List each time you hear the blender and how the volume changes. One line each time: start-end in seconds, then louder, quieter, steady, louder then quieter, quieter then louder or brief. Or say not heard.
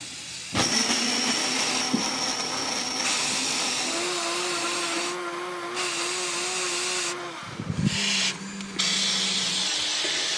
0.0-10.3 quieter.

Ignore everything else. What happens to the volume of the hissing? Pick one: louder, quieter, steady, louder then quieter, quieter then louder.
louder.